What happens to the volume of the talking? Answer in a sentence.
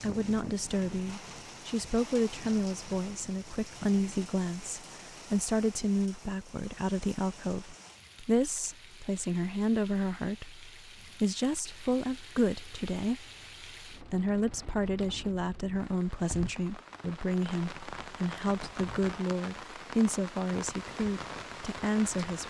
The loudness of the talking stays about the same.